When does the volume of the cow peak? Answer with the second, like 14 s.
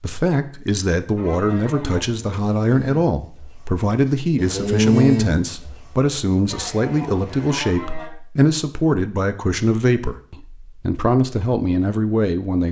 5 s.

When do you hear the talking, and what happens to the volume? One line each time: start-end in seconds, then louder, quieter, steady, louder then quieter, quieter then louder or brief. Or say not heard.
0.0-12.6 steady.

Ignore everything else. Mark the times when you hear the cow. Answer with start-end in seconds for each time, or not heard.
1.1-8.1.